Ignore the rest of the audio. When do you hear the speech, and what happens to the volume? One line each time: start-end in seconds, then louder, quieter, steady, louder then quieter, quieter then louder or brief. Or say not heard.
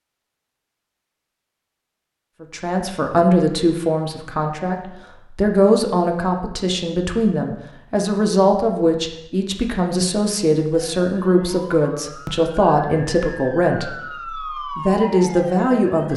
2.4-16.1 steady.